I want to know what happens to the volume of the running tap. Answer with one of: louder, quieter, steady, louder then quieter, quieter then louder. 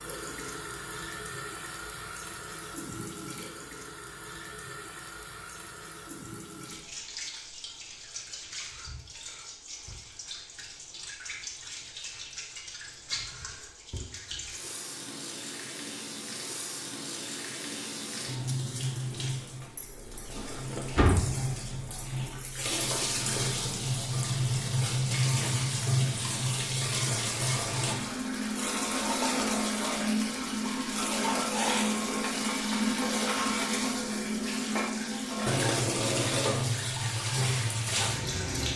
louder.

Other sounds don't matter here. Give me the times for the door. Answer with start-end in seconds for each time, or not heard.
20.9-21.8.